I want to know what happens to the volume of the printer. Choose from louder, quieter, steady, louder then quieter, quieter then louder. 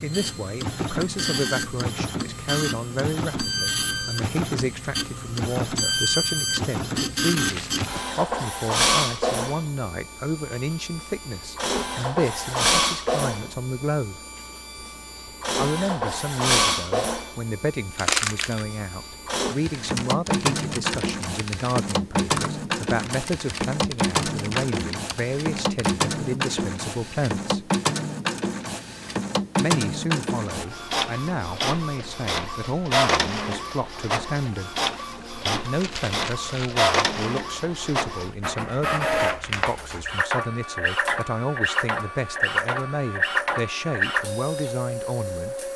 steady.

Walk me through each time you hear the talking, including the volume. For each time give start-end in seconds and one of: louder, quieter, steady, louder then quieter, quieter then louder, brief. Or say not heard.
0.0-14.2 steady
15.6-27.7 steady
29.6-34.8 steady
35.5-45.7 steady.